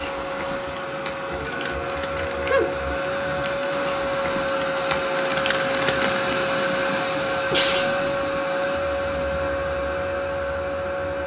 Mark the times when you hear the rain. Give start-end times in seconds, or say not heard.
0.0-6.3.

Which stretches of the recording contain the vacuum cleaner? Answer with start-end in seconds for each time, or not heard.
0.0-11.2.